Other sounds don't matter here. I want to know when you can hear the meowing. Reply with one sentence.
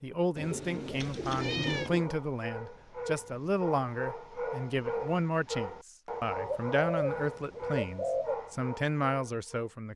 You can hear the meowing from 0.9 to 1.9 s.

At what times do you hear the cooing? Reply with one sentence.
The cooing can be heard from 0.3 to 2.1 s and from 6.5 to 8.3 s.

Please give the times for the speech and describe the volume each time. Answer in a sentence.
The speech can be heard from 0.0 to 9.9 s, at a steady volume.